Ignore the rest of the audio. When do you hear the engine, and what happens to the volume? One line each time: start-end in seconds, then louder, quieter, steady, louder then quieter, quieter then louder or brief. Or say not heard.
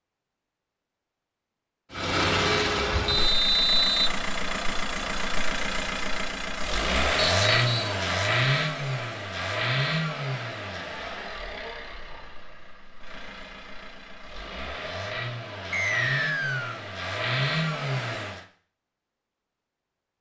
1.9-18.4 quieter then louder.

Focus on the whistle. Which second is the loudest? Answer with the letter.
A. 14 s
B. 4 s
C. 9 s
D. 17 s
B.